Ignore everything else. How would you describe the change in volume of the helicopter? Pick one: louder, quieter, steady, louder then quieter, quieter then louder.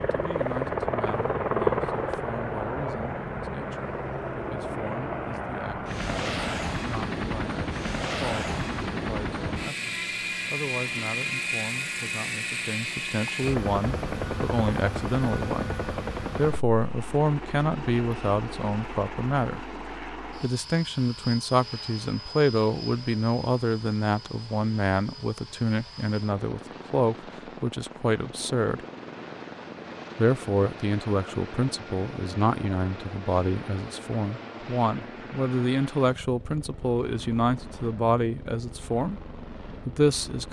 quieter.